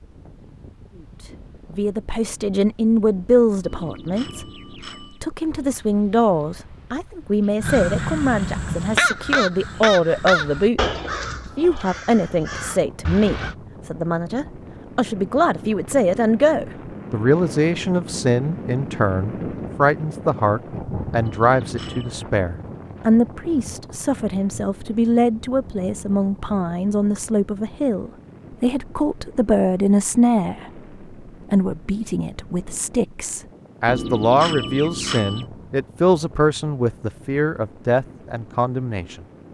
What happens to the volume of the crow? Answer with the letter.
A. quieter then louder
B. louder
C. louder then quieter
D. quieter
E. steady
D.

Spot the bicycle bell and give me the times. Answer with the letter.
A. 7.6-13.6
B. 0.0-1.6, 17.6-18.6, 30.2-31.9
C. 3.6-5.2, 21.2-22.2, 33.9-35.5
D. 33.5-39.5
C.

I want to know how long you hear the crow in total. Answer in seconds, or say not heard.
6 s.